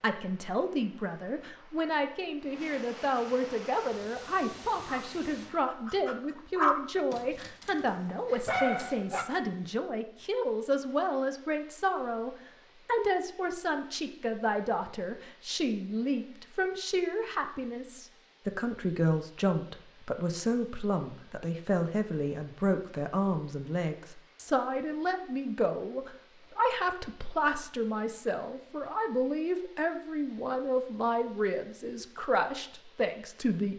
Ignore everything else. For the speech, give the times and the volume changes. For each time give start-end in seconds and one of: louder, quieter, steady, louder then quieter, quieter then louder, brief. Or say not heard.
0.0-33.7 steady.